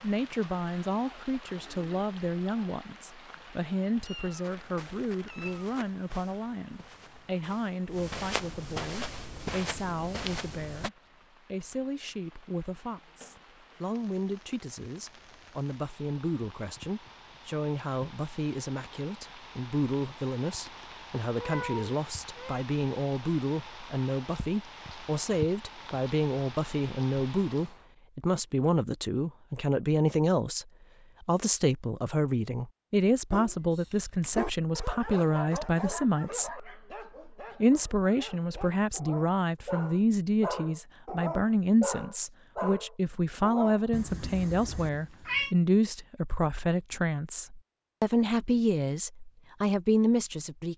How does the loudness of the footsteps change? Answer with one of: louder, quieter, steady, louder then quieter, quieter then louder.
louder.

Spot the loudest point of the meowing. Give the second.
45 s.